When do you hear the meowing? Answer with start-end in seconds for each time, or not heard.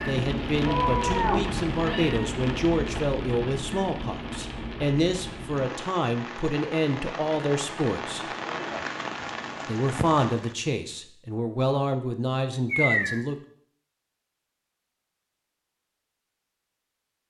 0.7-2.3, 12.7-13.2.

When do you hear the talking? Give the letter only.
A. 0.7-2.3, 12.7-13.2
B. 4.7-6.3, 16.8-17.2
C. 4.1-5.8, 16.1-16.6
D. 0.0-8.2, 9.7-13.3
D.